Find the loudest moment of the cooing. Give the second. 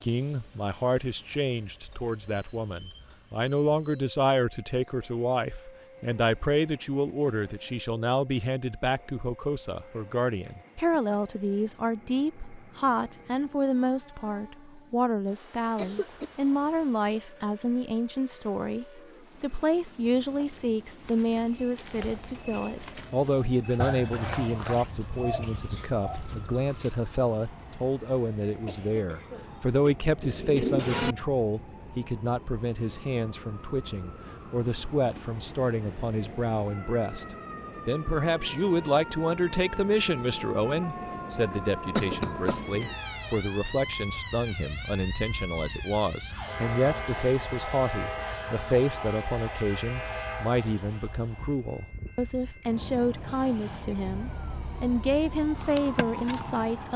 31 s.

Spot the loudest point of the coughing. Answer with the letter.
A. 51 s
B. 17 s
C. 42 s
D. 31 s
C.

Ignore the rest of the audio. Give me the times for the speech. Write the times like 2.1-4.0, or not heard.
0.0-56.9.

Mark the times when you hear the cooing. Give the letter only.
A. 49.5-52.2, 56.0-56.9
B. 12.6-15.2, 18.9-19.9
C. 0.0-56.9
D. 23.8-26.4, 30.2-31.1
D.